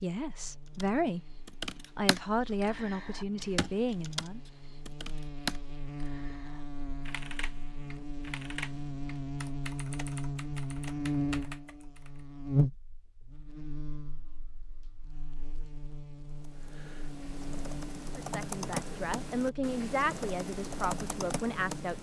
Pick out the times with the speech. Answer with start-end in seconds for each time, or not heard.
0.0-4.4, 18.1-21.9.